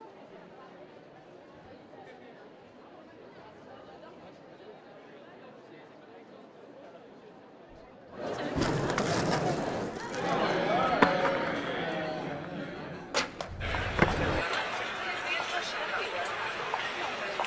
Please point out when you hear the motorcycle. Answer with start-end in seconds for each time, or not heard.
not heard.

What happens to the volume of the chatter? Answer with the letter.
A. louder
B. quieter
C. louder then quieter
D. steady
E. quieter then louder
A.